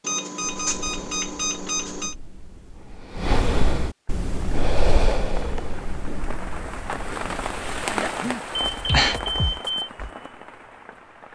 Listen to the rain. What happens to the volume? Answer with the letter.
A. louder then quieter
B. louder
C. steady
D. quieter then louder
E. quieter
A.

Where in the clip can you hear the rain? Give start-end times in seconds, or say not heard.
4.0-11.3.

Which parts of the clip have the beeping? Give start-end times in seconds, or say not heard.
0.0-2.1, 8.6-9.9.